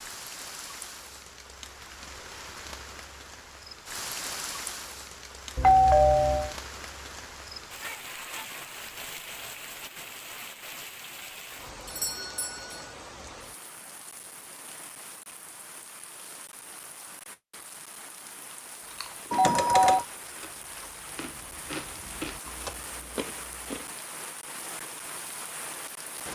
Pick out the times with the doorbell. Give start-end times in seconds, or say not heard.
5.5-6.5, 11.8-12.8, 19.3-20.1.